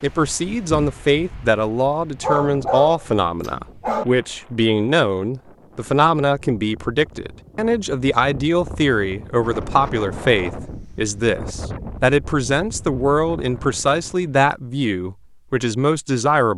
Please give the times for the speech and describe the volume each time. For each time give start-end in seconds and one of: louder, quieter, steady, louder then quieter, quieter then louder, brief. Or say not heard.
0.0-16.5 steady.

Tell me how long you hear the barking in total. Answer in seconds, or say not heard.
2 s.